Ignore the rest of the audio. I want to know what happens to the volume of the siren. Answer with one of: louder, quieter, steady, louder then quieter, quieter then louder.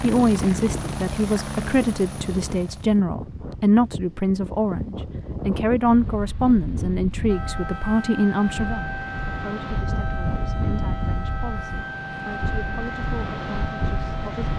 steady.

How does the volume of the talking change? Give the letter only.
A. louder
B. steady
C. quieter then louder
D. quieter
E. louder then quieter
D.